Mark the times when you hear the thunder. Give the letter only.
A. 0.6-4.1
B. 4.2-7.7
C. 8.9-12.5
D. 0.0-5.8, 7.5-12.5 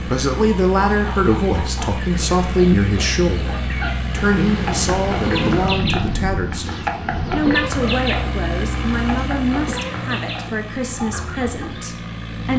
B.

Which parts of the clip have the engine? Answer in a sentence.
The engine can be heard from 0.0 to 5.8 s and from 7.5 to 12.5 s.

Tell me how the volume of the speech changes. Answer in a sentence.
The volume of the speech goes down.